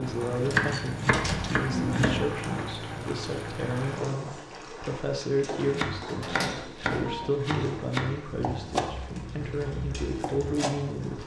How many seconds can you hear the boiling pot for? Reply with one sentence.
The boiling pot can be heard for 11 seconds in total.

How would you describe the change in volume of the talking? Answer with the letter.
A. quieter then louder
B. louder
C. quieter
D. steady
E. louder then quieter
D.